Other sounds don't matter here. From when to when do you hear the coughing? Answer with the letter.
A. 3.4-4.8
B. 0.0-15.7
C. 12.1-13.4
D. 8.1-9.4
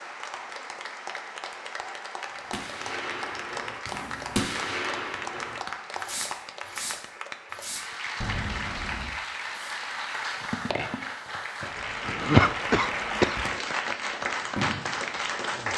C.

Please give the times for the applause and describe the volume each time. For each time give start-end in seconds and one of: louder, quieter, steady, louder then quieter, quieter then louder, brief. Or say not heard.
0.0-15.7 louder.